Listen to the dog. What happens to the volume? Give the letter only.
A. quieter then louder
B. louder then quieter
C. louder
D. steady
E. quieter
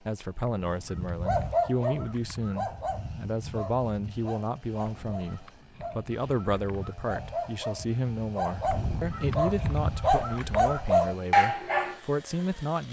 A.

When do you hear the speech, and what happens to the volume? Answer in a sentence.
The speech can be heard from 0.1 to 12.8 s, at a steady volume.